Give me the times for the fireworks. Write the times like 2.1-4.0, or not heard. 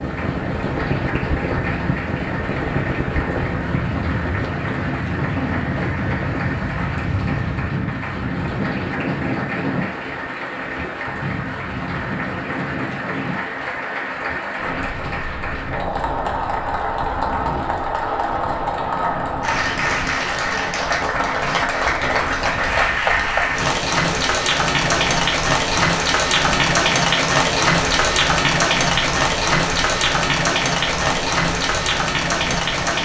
not heard.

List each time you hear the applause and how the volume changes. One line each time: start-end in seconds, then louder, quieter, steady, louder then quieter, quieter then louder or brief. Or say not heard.
0.0-33.0 louder.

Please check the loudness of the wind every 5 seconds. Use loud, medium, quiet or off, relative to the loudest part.
loud, loud, medium, medium, medium, medium, medium.